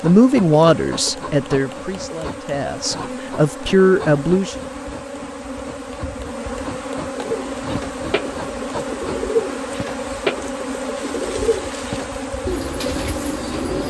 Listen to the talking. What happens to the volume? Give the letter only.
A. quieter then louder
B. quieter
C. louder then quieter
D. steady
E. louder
A.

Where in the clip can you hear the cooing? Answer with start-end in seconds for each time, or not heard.
7.2-13.8.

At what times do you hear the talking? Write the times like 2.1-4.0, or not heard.
0.0-4.5.